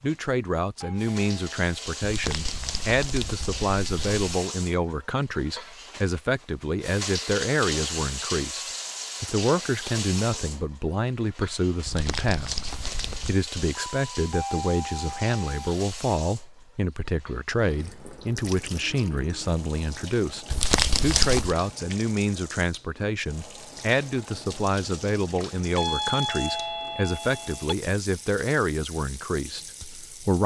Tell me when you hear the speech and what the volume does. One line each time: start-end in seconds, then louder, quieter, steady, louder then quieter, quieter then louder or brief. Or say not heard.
0.0-30.4 steady.